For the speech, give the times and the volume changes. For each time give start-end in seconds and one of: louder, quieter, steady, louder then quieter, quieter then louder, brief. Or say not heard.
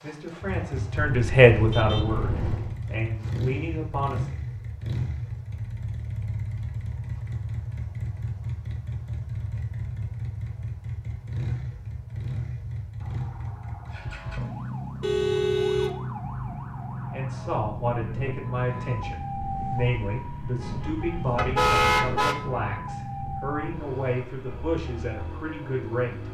0.0-4.2 louder then quieter
17.1-26.2 steady.